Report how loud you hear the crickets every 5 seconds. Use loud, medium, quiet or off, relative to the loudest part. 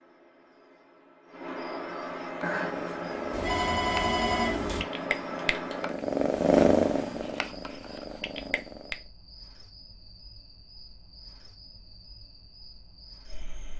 loud, medium, quiet.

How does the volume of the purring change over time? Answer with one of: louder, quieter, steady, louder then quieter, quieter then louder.
louder then quieter.